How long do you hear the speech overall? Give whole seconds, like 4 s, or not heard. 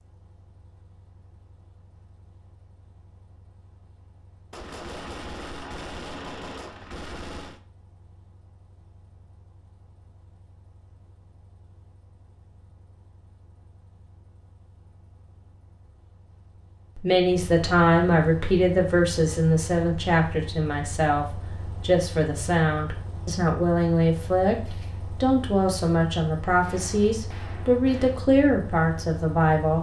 13 s.